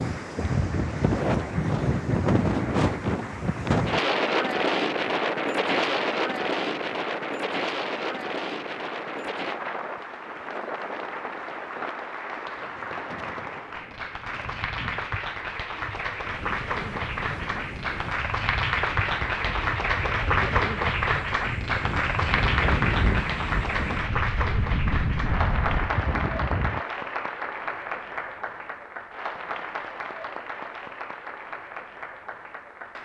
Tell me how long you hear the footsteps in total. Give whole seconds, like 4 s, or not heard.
not heard.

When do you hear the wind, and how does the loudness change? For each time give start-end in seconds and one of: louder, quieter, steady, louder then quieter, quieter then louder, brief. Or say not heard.
0.0-26.8 quieter then louder.